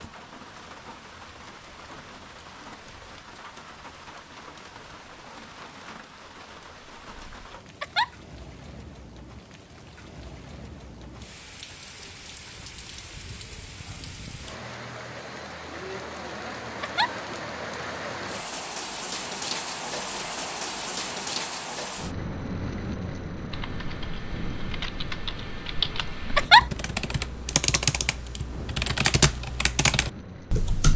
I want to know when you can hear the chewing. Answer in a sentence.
You can't hear the chewing here.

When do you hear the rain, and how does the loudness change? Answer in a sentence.
The rain can be heard from 0.0 to 30.9 s, getting louder then quieter.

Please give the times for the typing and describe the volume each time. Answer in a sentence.
The typing can be heard from 23.5 to 30.9 s, getting louder.